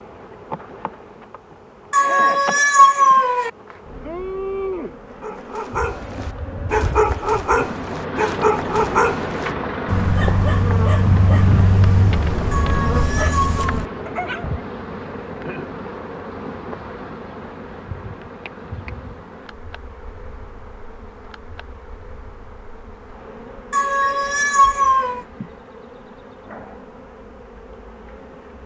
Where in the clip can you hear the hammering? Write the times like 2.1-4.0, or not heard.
not heard.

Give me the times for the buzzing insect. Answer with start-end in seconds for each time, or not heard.
0.0-28.6.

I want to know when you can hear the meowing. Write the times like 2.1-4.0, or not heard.
1.9-3.5, 12.5-13.7, 23.7-25.2.